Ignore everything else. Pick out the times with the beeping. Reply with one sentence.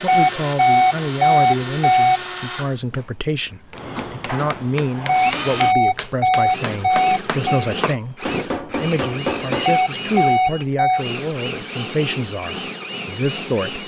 You can hear the beeping from 0.1 to 2.2 s, from 5.0 to 7.7 s and from 9.7 to 11.1 s.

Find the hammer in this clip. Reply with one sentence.
You can hear the hammer from 3.7 to 9.7 s.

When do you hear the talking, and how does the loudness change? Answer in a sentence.
The talking can be heard from 0.0 to 13.8 s, at a steady volume.